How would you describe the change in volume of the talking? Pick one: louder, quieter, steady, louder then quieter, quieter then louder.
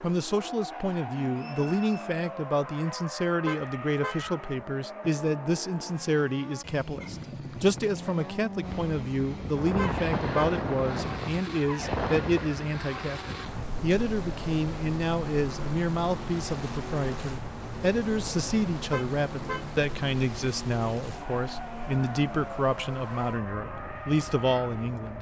steady.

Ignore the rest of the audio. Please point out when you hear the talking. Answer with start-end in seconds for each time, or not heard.
0.0-25.1.